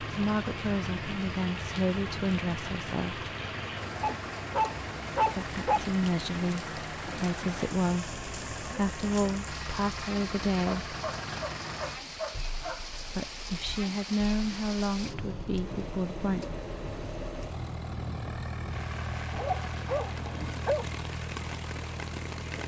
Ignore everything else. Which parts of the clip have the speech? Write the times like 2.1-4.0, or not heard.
0.0-3.2, 5.3-10.9, 13.1-16.4.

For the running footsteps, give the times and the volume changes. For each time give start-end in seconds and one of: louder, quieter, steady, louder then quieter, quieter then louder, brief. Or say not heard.
not heard.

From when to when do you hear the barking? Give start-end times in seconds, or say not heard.
4.0-5.8, 10.7-12.8, 19.3-20.9.